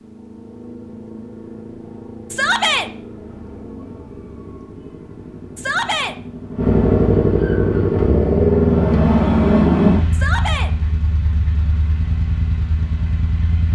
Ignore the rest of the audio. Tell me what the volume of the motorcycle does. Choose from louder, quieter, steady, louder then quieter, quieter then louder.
louder then quieter.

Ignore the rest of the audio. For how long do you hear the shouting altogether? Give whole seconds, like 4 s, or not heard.
2 s.